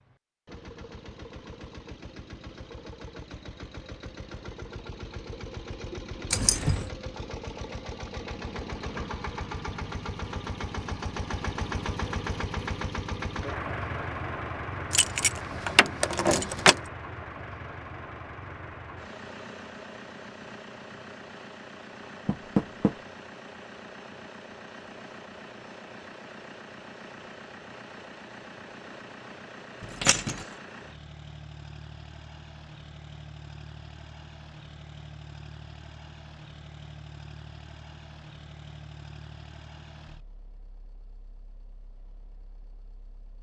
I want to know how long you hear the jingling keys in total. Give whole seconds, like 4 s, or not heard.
3 s.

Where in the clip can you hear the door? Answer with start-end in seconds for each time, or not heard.
22.2-22.9.